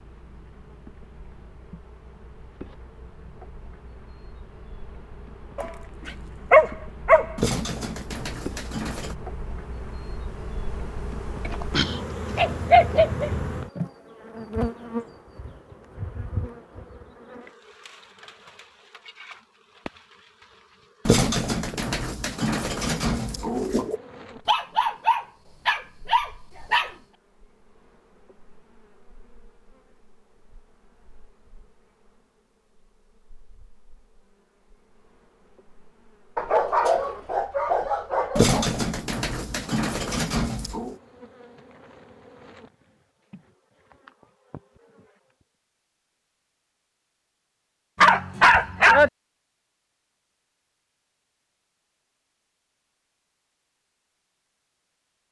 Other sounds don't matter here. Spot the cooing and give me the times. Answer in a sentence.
The cooing can be heard from 7.3 to 9.2 s, from 21.1 to 24.0 s and from 38.4 to 41.0 s.